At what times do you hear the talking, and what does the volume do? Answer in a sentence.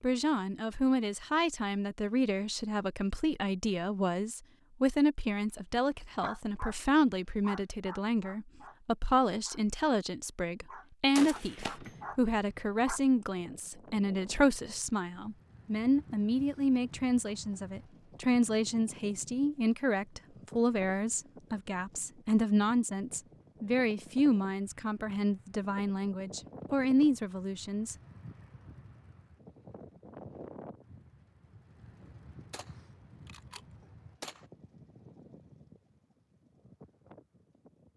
You can hear the talking from 0.0 to 27.9 s, at a steady volume.